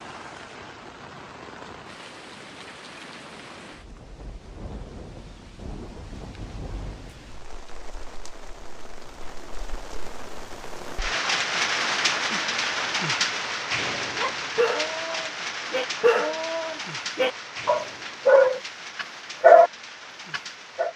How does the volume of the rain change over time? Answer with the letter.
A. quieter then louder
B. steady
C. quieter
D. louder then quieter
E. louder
D.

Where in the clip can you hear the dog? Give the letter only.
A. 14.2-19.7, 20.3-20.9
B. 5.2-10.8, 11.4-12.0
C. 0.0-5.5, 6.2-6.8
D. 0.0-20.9
A.